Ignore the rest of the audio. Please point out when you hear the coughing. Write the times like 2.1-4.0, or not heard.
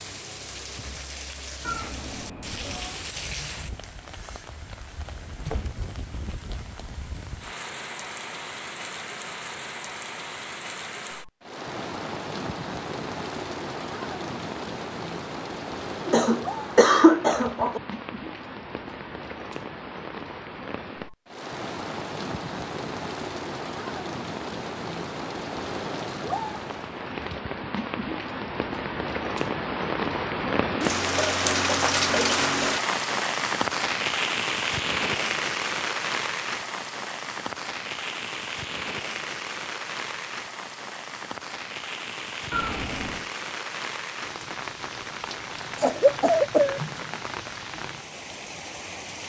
16.1-17.8, 45.8-46.8.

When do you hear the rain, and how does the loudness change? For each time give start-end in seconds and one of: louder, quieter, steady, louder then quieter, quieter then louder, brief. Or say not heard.
0.0-49.2 louder then quieter.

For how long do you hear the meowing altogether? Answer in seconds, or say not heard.
2 s.